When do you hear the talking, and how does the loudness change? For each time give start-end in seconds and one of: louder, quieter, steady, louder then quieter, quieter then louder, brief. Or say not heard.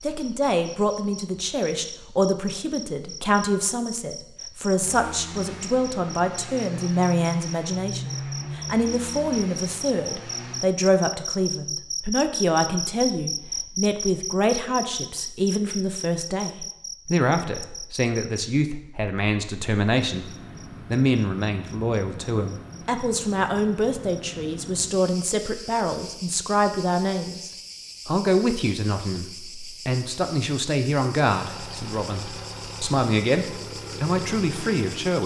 0.0-35.2 steady.